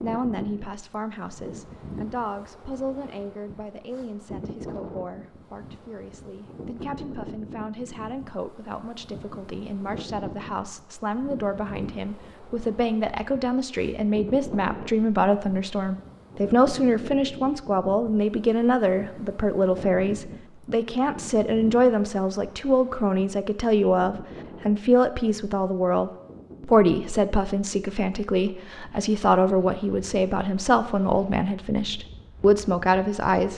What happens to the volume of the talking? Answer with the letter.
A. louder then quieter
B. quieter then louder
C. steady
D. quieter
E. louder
E.